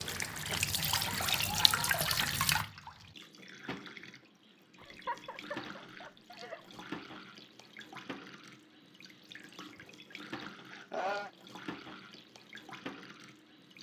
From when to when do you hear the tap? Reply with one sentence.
You can hear the tap from 0.0 to 13.7 s.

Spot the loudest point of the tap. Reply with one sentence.
The loudest moment of the tap is at 2 seconds.